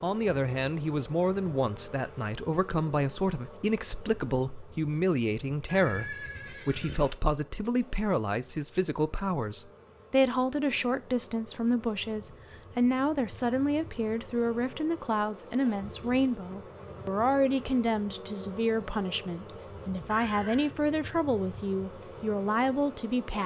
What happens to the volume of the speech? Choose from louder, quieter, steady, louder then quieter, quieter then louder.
steady.